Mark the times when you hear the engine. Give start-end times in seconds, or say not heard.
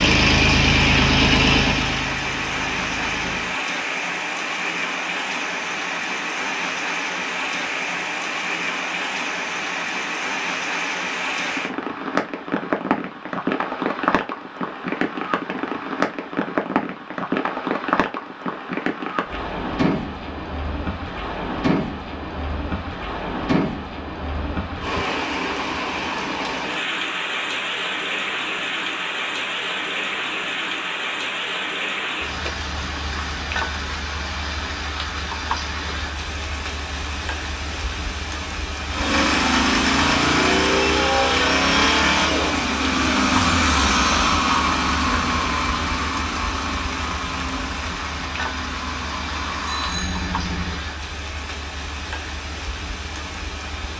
0.0-3.6, 38.9-50.9.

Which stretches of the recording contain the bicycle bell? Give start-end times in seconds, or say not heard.
49.6-50.3.